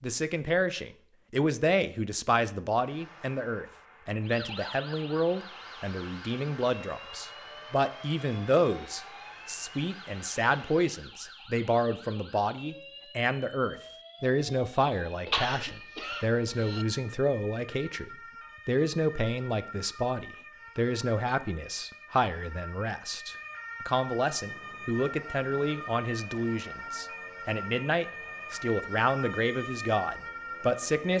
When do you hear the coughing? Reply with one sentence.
You can hear the coughing from 15.2 to 16.9 s.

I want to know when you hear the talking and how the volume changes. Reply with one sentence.
You can hear the talking from 0.0 to 31.1 s, at a steady volume.